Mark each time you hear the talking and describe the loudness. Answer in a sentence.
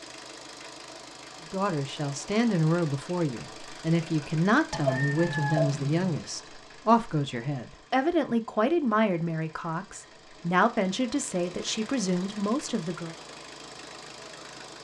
The talking can be heard from 1.5 to 13.2 s, at a steady volume.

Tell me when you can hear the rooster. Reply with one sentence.
You can hear the rooster from 4.7 to 6.2 s.